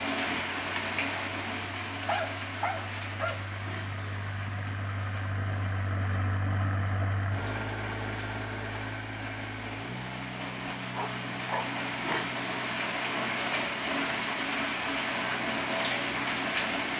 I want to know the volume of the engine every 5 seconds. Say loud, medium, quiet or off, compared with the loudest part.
medium, loud, medium, quiet.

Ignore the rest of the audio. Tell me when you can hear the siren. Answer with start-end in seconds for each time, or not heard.
not heard.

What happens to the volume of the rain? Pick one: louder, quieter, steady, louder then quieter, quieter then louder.
quieter then louder.